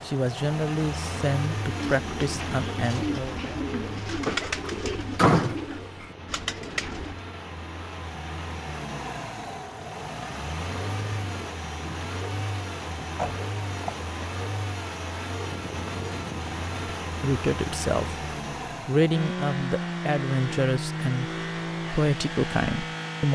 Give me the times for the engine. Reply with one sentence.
You can hear the engine from 0.0 to 23.2 s.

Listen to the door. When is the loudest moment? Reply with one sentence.
The loudest moment of the door is at 5 seconds.